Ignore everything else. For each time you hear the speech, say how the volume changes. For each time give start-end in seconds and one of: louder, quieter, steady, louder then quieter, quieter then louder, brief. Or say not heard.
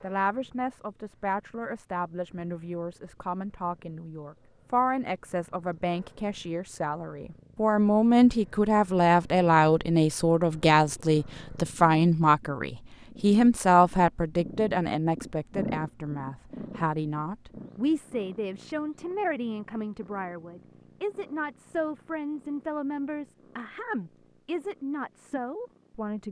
0.0-26.2 louder then quieter.